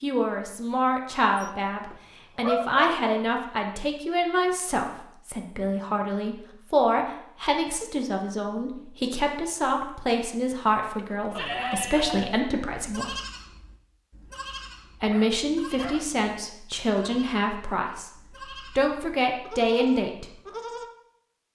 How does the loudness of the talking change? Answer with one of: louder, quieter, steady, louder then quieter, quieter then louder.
steady.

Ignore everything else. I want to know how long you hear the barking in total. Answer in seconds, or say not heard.
4 s.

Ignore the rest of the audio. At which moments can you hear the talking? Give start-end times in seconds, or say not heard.
0.0-13.2, 15.0-20.4.